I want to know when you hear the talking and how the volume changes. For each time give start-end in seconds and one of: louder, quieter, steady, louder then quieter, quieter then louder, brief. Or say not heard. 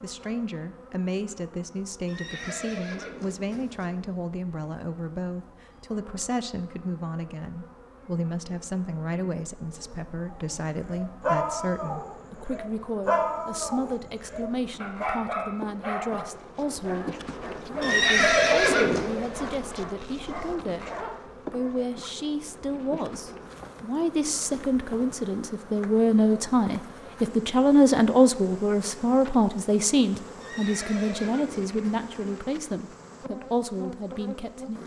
0.0-20.9 steady
21.5-34.8 louder then quieter.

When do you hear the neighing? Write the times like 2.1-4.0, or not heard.
2.0-3.9, 17.8-19.1, 30.4-32.1.